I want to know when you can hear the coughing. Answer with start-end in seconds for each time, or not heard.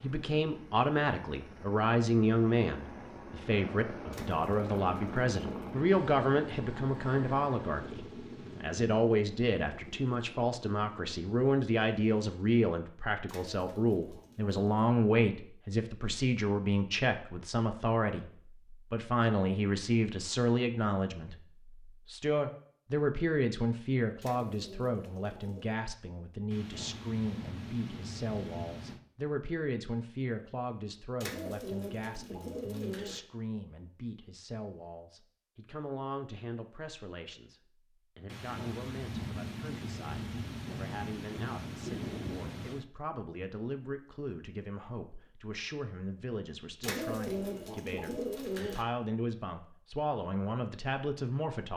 not heard.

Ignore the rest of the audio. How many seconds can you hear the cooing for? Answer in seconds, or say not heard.
9 s.